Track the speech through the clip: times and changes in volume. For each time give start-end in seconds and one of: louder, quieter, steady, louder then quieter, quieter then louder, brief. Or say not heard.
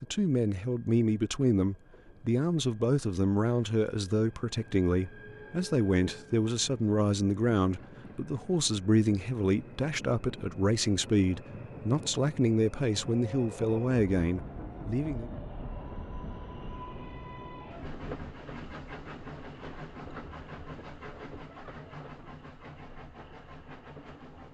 0.0-15.3 steady.